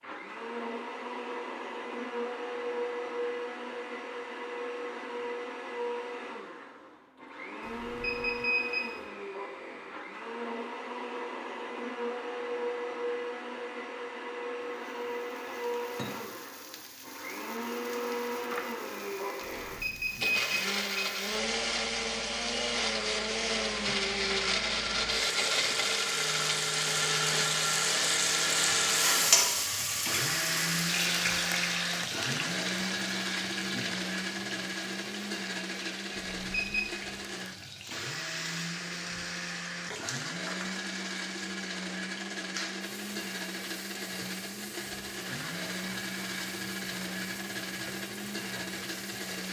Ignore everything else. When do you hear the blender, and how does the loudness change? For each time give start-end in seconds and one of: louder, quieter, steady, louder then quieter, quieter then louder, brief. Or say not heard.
0.0-49.4 louder then quieter.